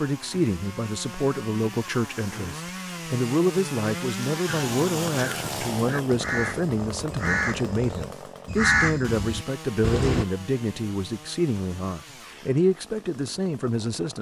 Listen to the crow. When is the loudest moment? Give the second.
9 s.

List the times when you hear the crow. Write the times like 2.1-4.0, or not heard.
4.5-10.2.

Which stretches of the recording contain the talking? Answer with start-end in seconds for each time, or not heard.
0.0-14.1.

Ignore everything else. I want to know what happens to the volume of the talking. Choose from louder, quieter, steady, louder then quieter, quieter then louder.
steady.